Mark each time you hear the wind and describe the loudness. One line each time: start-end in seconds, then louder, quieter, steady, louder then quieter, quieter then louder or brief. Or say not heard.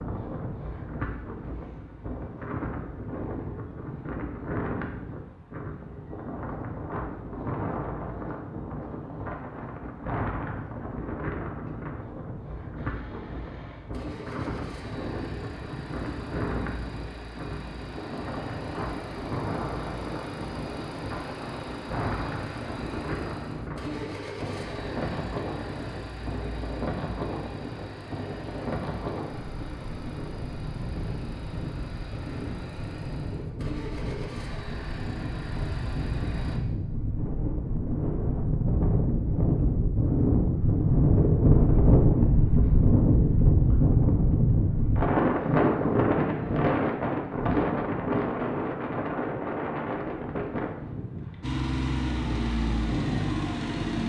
0.0-54.0 louder.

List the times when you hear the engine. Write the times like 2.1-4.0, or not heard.
12.8-36.6, 51.4-54.0.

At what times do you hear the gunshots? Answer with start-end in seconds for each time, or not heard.
not heard.